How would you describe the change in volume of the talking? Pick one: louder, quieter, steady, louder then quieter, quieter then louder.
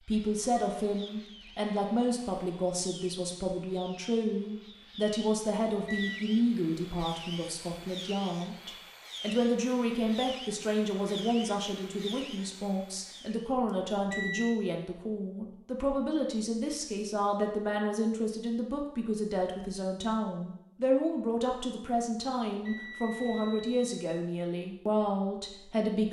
steady.